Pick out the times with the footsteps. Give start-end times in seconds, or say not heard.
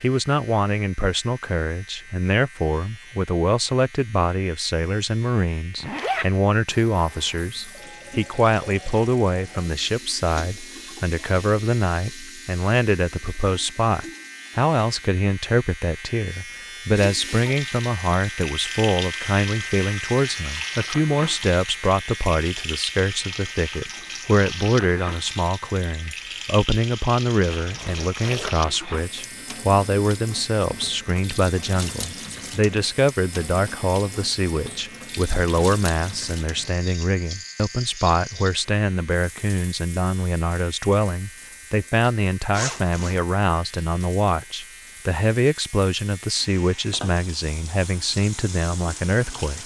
not heard.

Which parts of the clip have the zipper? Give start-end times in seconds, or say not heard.
5.8-6.2, 27.6-28.6, 42.5-43.2.